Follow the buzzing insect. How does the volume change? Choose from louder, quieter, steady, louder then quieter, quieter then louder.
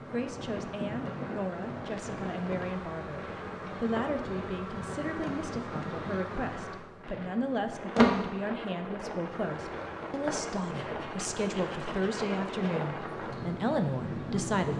louder then quieter.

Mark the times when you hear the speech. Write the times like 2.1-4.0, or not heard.
0.1-14.7.